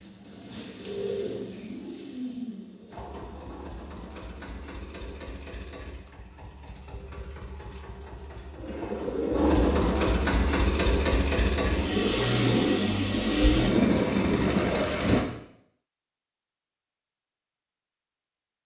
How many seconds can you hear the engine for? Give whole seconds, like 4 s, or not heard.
12 s.